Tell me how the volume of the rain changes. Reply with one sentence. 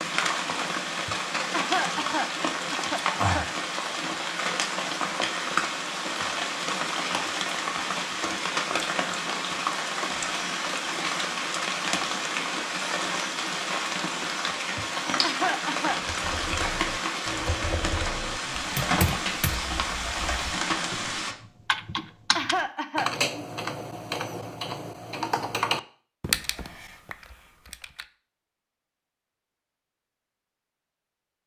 The volume of the rain stays about the same.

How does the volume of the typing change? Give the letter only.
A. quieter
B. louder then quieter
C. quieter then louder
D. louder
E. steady
D.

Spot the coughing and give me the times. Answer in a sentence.
The coughing can be heard from 1.1 to 3.5 s, from 14.8 to 16.0 s and from 21.9 to 23.1 s.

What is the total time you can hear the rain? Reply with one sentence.
You can hear the rain for 21 seconds altogether.